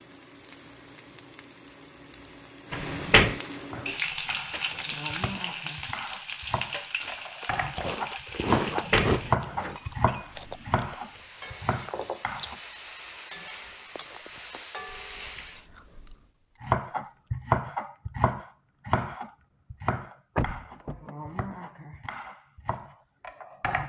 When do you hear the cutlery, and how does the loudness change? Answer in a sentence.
You can't hear the cutlery here.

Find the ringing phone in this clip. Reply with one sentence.
You can't hear the ringing phone here.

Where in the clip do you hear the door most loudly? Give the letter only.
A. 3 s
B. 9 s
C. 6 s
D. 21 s
A.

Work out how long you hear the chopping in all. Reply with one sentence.
You can hear the chopping for 16 seconds altogether.